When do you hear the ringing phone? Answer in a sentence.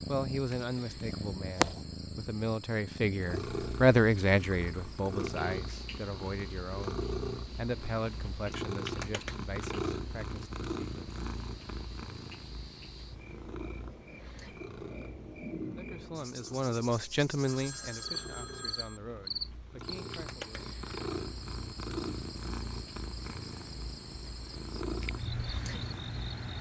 You can hear the ringing phone from 17.4 to 19.0 s.